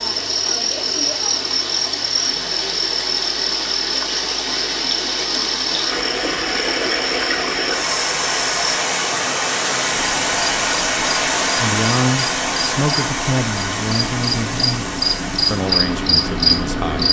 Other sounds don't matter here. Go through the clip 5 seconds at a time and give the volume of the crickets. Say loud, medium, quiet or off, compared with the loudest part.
medium, medium, medium, loud.